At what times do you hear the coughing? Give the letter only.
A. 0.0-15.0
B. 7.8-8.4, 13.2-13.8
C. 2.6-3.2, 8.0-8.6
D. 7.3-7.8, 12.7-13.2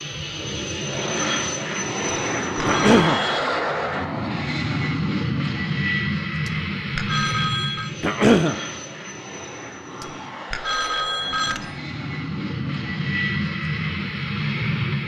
C.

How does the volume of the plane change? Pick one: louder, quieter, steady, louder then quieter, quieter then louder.
quieter then louder.